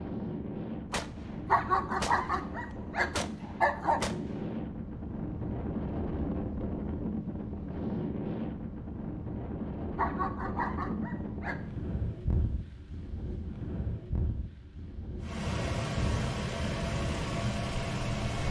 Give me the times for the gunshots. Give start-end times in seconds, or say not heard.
0.9-4.5.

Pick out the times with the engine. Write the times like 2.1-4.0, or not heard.
15.2-18.4.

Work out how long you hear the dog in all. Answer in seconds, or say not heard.
4 s.